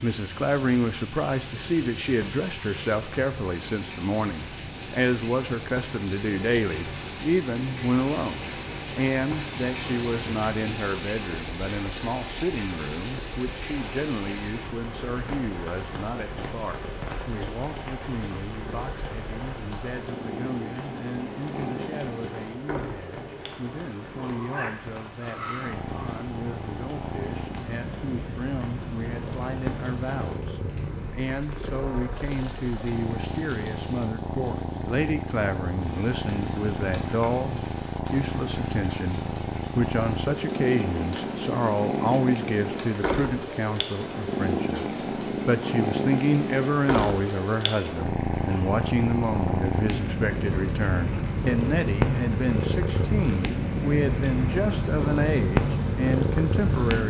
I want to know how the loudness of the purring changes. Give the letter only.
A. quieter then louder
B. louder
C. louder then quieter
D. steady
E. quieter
B.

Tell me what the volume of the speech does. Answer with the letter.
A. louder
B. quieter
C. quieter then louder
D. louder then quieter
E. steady
C.